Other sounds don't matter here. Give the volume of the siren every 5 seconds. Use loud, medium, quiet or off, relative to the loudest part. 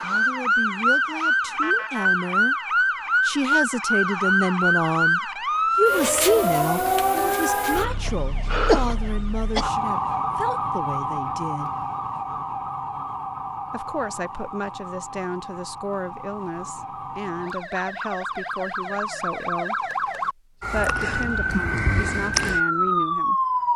loud, loud, medium, medium, loud.